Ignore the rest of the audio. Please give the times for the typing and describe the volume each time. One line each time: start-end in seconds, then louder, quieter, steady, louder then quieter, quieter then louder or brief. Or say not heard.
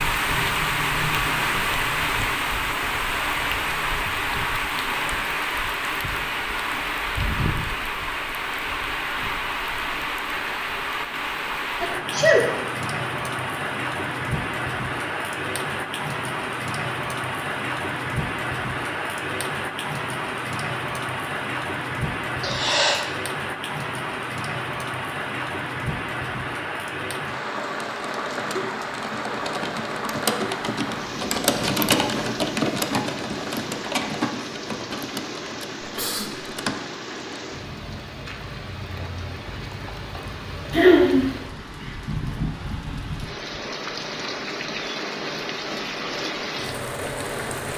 27.6-37.5 louder then quieter.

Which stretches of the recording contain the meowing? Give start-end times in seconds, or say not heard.
not heard.